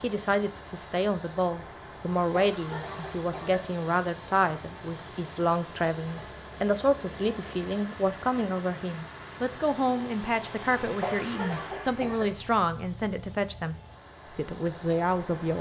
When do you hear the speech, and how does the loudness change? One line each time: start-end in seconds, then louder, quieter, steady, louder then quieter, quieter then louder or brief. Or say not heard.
0.0-15.5 steady.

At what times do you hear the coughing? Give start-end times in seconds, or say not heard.
2.3-3.7, 11.0-12.3.